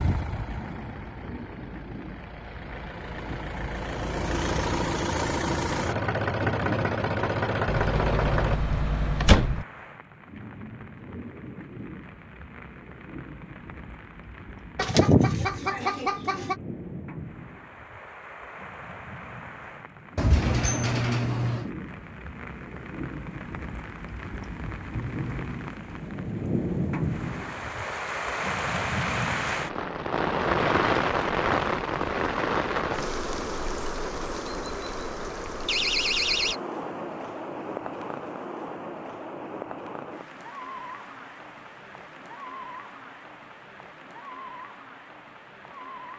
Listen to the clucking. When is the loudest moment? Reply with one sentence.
The loudest moment of the clucking is at 15 seconds.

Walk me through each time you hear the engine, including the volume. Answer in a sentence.
You can hear the engine from 0.0 to 8.6 s, getting louder.